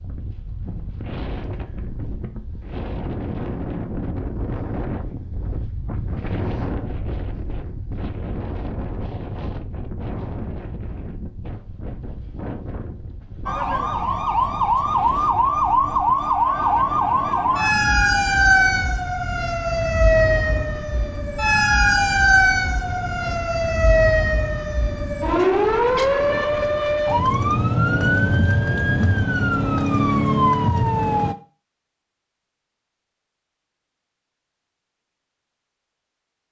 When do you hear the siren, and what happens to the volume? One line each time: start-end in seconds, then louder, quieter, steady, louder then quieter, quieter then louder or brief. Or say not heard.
13.4-31.4 steady.